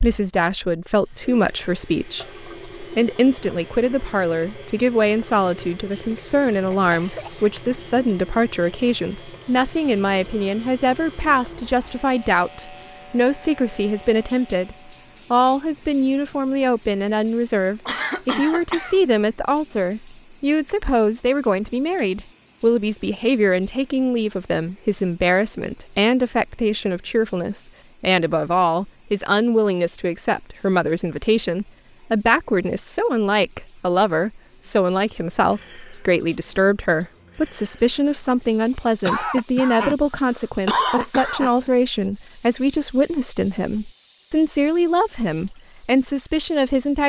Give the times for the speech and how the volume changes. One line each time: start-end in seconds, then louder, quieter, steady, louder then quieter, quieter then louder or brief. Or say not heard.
0.0-47.0 steady.